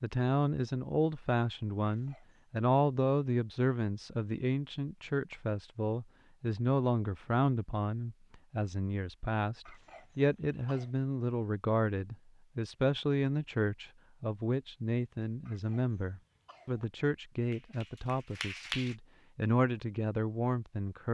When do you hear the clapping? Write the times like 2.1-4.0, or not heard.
17.5-18.9.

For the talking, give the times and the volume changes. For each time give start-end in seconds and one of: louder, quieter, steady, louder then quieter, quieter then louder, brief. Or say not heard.
0.0-21.0 steady.